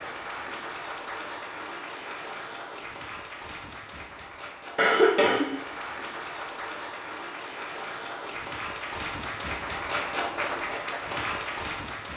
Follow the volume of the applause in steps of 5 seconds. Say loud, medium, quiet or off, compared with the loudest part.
medium, loud, loud.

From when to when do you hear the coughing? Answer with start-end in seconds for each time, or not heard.
4.8-5.5.